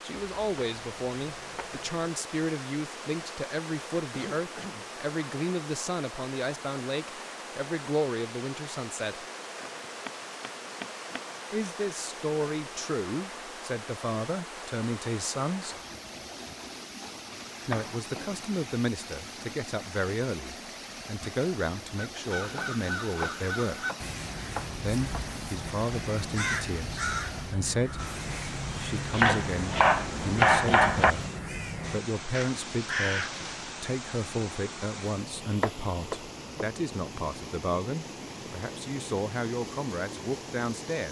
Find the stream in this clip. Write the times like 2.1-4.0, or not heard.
0.0-41.0.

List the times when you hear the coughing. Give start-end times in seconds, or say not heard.
4.1-4.9.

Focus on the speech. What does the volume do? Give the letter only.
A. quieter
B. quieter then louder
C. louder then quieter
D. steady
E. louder
D.